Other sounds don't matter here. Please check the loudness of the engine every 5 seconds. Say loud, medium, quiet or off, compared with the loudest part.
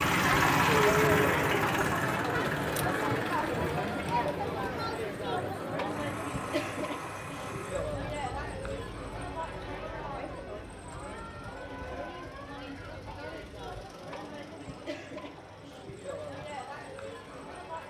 loud, quiet, quiet, quiet.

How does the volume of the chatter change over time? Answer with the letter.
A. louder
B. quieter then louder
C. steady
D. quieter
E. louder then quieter
D.